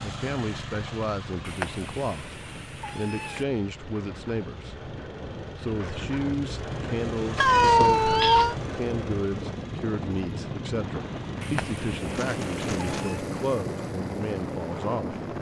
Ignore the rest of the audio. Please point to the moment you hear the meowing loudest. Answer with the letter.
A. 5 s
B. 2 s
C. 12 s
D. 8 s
D.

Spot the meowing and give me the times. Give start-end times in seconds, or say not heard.
1.4-3.5, 7.3-8.6, 11.4-13.2.